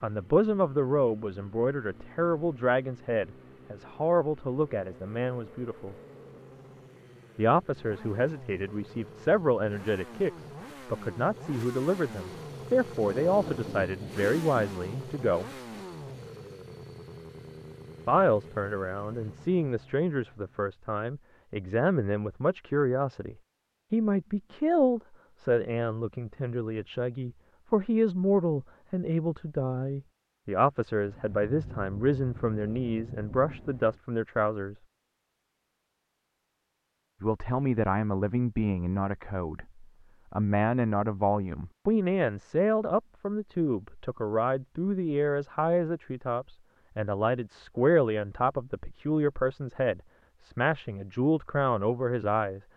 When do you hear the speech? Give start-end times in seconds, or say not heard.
0.0-6.0, 7.3-15.5, 18.1-34.8, 37.2-52.6.